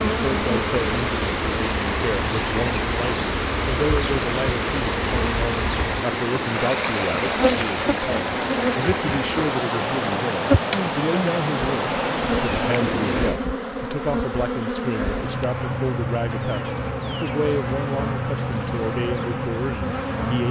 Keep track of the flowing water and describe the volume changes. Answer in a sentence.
The loudness of the flowing water stays about the same.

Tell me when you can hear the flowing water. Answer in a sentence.
You can hear the flowing water from 0.0 to 13.4 s.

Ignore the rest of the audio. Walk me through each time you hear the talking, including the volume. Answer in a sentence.
The talking can be heard from 0.1 to 20.4 s, at a steady volume.